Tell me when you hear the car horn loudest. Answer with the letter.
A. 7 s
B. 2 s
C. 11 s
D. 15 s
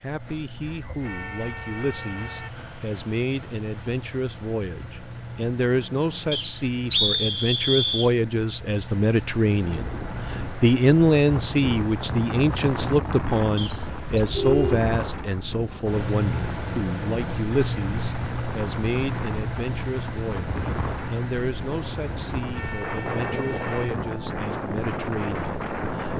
D.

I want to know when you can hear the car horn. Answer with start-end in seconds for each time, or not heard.
1.0-2.5, 14.2-15.7, 22.5-23.9.